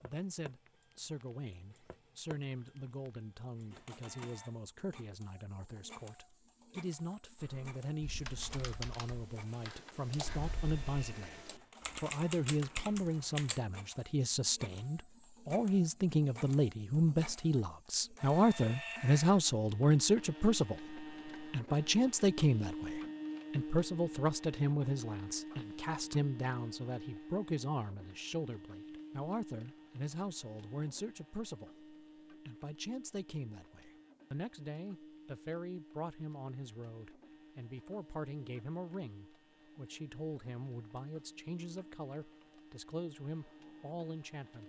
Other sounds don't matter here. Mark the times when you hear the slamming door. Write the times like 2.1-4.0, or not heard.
not heard.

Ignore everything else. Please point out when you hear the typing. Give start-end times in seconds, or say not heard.
7.3-13.6.